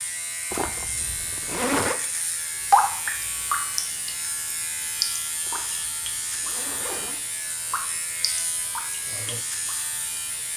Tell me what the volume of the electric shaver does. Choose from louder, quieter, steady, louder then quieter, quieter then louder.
steady.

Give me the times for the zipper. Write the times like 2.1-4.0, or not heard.
0.5-2.0, 5.5-7.2.